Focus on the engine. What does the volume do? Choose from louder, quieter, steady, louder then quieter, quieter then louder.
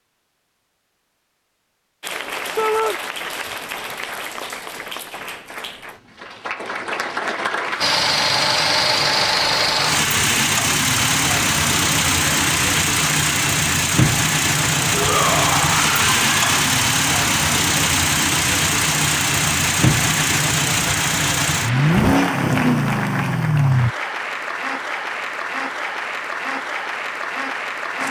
steady.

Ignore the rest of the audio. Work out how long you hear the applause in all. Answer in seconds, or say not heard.
26 s.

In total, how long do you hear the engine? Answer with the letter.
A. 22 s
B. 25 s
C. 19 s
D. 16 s
D.